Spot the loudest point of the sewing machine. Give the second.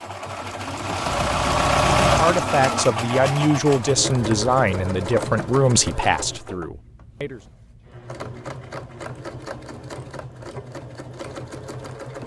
2 s.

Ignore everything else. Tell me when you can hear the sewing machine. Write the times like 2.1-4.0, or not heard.
0.0-12.2.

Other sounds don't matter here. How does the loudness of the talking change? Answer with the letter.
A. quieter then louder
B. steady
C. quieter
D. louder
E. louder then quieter
C.